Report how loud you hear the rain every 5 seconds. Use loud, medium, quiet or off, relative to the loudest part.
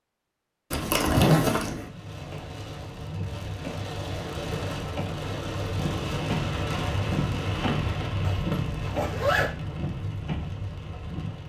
medium, loud, medium.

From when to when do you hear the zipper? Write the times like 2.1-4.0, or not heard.
0.7-1.8, 8.2-9.5.